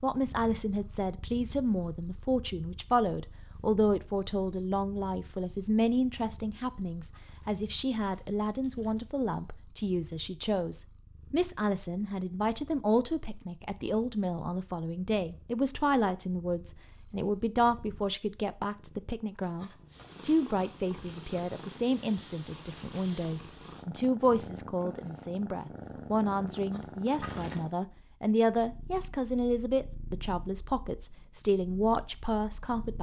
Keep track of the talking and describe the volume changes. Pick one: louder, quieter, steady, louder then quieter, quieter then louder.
steady.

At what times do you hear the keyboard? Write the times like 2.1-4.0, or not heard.
not heard.